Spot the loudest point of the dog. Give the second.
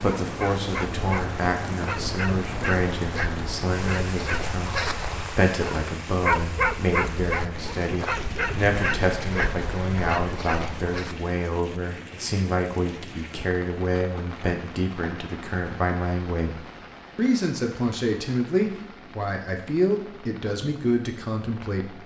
6 s.